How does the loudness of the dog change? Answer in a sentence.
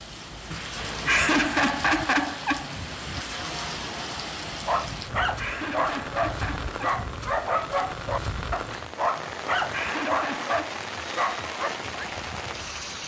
The loudness of the dog stays about the same.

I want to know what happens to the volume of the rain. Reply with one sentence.
The volume of the rain stays about the same.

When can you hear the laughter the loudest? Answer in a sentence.
The volume of the laughter peaks at 1 second.